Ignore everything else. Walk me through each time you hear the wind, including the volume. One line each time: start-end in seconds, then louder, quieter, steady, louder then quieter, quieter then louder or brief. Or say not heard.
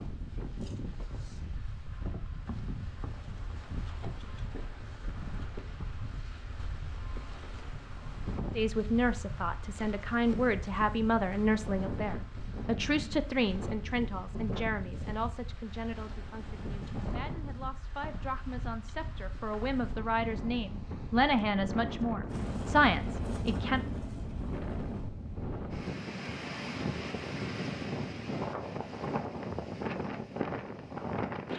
0.0-31.5 louder.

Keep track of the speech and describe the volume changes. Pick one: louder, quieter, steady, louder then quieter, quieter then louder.
quieter then louder.